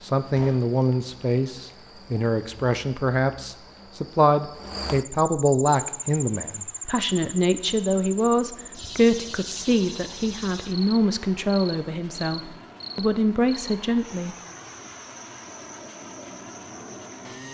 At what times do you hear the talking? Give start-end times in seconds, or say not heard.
0.0-14.3.